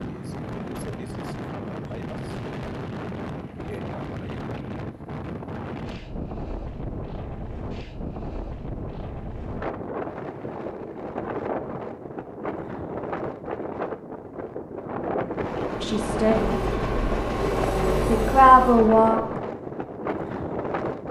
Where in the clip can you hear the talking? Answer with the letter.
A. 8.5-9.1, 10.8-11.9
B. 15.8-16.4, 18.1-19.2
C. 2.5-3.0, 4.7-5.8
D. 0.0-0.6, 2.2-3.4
B.